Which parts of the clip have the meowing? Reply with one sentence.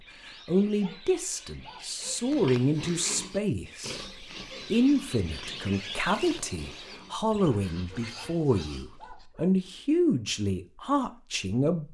You can't hear the meowing here.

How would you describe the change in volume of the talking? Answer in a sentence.
The loudness of the talking stays about the same.